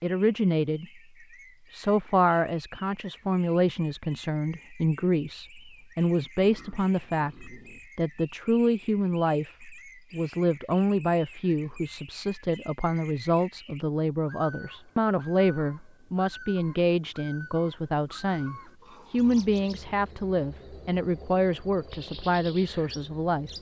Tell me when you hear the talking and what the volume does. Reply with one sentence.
You can hear the talking briefly from 0.0 to 0.8 s; and from 1.7 to 23.5 s, at a steady volume.